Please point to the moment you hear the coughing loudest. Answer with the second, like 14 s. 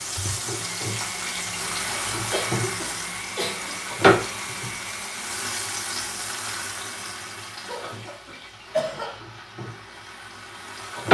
9 s.